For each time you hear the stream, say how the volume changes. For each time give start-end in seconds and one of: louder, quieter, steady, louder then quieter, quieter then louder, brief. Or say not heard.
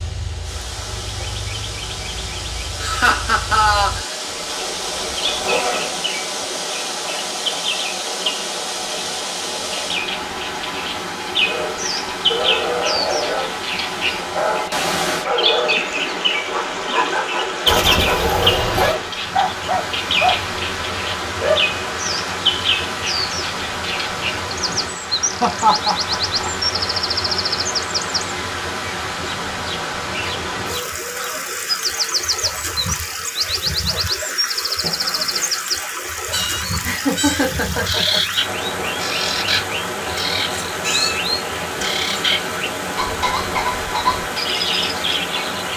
0.0-45.7 steady.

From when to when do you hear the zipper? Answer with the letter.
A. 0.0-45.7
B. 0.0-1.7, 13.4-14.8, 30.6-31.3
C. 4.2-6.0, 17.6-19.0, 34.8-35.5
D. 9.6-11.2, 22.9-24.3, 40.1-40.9
C.